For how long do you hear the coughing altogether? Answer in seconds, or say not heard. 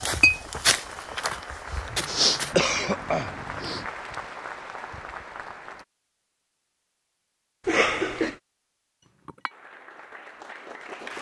2 s.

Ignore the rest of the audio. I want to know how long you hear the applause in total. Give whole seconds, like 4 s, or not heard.
7 s.